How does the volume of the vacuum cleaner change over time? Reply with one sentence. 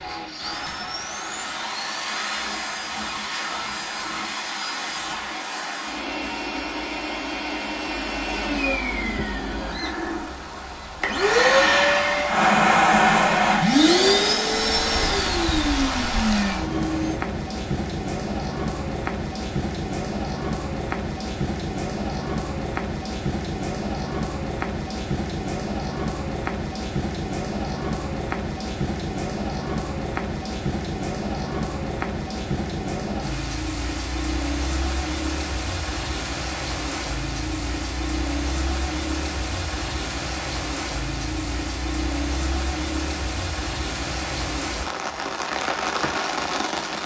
The volume of the vacuum cleaner goes up.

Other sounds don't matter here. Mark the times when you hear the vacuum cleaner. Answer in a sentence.
The vacuum cleaner can be heard from 0.0 to 17.1 s.